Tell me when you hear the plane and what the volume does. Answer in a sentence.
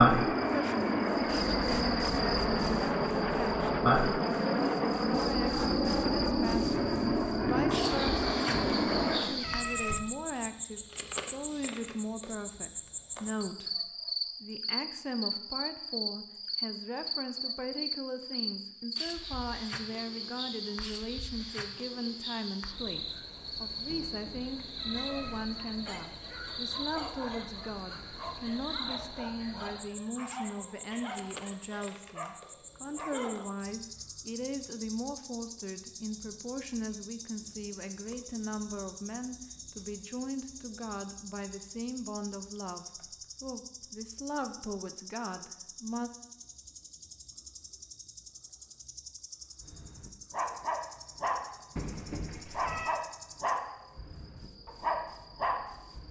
You can hear the plane from 0.0 to 9.4 s, at a steady volume.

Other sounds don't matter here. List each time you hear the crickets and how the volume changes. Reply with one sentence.
You can hear the crickets from 0.0 to 56.0 s, getting quieter.